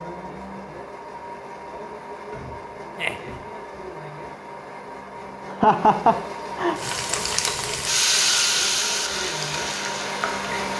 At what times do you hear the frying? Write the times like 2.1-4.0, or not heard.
6.8-10.7.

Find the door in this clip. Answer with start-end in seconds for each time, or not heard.
2.3-3.6.